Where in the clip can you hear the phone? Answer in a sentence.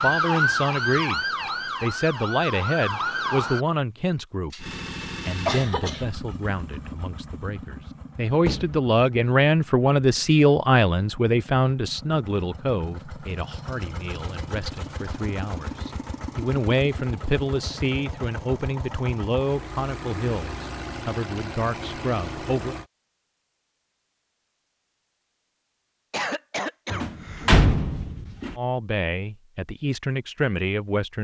You can't hear the phone here.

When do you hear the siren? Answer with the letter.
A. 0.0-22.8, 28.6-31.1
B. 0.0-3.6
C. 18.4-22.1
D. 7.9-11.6
B.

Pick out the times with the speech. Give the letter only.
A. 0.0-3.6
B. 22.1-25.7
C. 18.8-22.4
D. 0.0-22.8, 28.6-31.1
D.